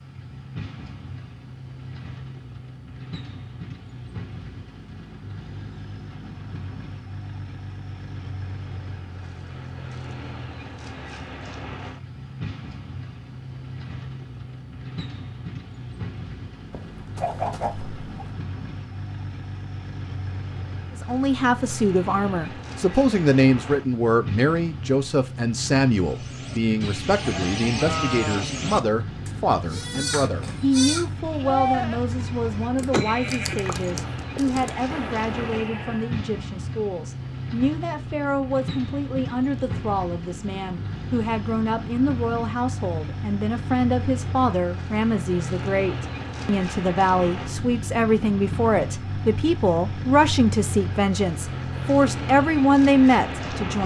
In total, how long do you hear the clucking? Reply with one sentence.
The clucking can be heard for 2 seconds in total.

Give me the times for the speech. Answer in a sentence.
You can hear the speech from 20.9 to 53.8 s.